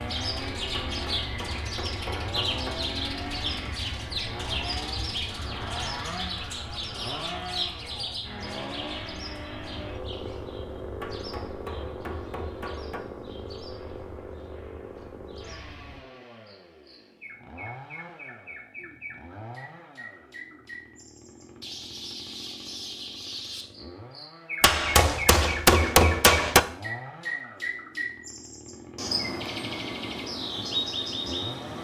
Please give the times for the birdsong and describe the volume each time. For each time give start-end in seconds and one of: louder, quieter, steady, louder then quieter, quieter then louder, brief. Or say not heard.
0.0-31.8 quieter then louder.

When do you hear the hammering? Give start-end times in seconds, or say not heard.
0.7-2.8, 11.0-13.0, 24.6-26.6.